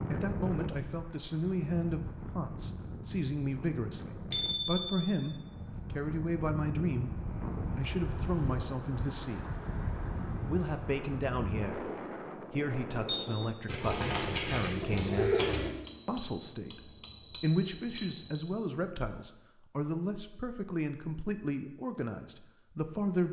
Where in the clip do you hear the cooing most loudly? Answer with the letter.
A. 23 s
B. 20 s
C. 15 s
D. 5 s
C.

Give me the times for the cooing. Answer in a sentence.
You can hear the cooing from 13.7 to 15.7 s.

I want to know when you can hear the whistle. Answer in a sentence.
The whistle can't be heard in this clip.